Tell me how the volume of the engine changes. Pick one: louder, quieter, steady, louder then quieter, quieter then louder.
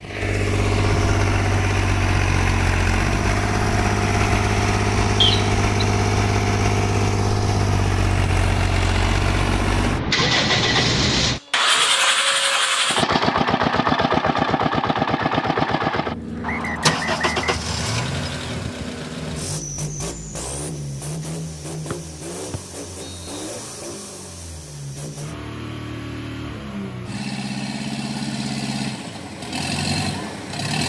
quieter.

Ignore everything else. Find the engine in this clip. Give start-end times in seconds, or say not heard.
0.0-30.8.